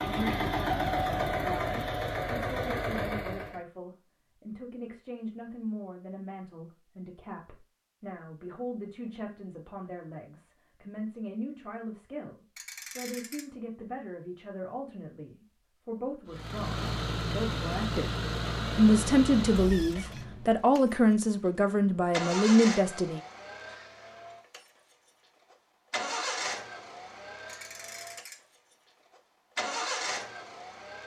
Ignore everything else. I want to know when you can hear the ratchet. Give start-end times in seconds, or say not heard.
12.6-13.4, 27.4-28.4.